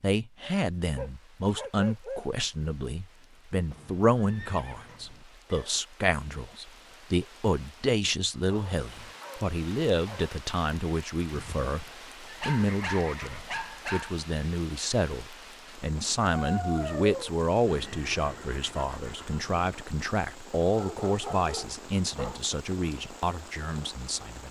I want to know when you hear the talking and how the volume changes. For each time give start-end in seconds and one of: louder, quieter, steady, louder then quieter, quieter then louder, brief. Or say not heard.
0.0-24.4 steady.